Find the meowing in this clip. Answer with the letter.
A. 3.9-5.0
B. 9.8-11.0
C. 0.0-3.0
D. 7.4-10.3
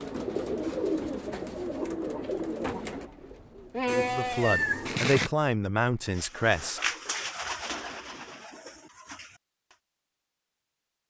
A.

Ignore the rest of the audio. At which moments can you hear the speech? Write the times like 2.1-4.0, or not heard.
3.9-6.8.